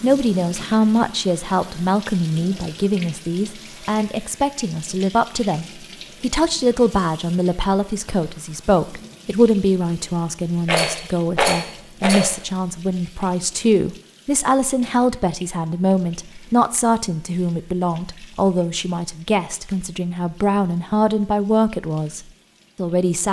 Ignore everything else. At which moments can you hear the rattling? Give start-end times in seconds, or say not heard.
10.7-12.3.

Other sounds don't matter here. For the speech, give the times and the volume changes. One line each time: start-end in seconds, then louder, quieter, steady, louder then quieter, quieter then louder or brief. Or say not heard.
0.0-23.2 steady.